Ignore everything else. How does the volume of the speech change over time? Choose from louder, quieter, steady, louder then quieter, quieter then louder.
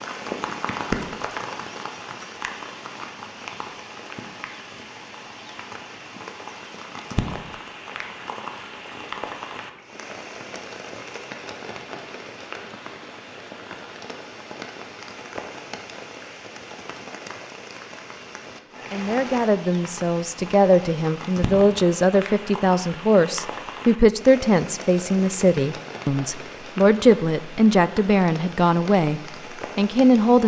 steady.